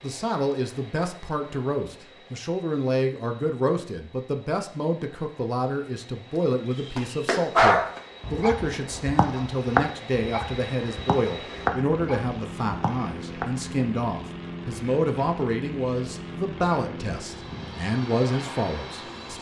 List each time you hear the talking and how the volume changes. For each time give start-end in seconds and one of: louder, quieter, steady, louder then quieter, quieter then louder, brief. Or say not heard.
0.0-19.3 steady.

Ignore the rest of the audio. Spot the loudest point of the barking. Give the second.
8 s.